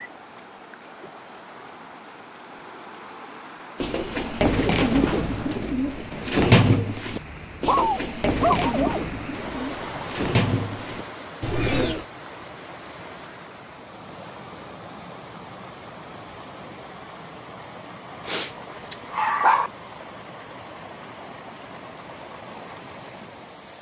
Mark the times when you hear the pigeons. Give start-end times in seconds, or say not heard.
3.8-12.1.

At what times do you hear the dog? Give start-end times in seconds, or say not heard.
7.0-9.1, 18.2-19.7.